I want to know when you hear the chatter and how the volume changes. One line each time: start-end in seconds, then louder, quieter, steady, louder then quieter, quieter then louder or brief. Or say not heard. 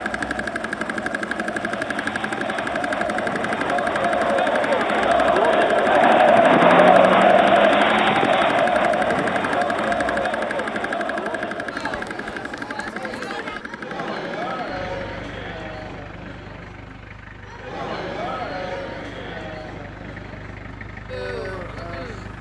0.0-22.3 louder then quieter.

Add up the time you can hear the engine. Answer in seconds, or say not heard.
22 s.